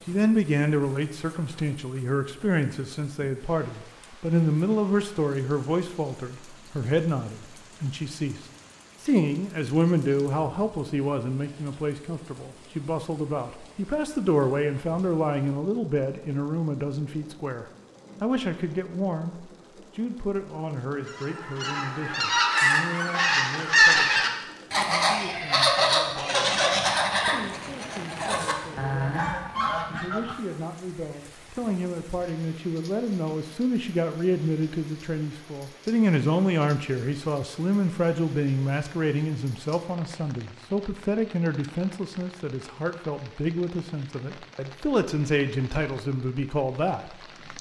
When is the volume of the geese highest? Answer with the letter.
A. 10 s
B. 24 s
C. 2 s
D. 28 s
B.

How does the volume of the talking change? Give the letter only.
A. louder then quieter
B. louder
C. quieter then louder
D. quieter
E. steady
C.